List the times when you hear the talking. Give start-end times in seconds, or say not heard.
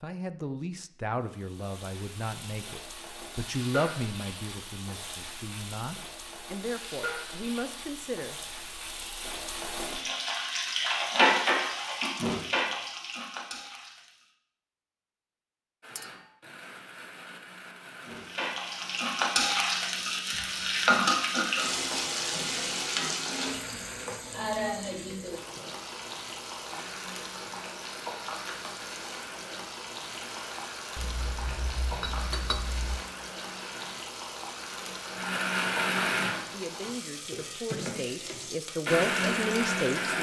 0.0-8.4, 36.5-40.1.